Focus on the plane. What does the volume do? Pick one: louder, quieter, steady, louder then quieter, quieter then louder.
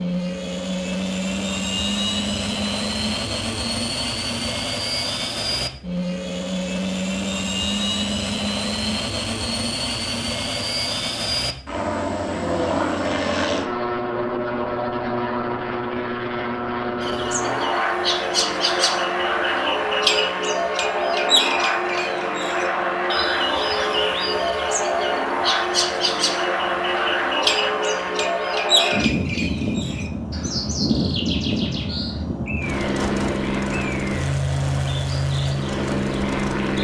steady.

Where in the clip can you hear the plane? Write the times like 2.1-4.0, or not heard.
0.0-36.8.